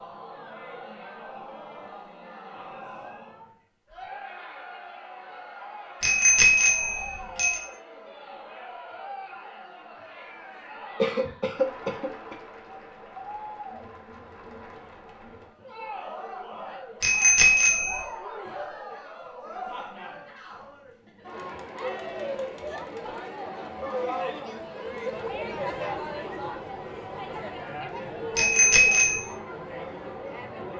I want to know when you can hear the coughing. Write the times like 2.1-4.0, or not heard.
11.0-12.3.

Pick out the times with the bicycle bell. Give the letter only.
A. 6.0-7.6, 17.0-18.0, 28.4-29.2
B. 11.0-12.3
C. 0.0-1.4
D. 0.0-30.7
A.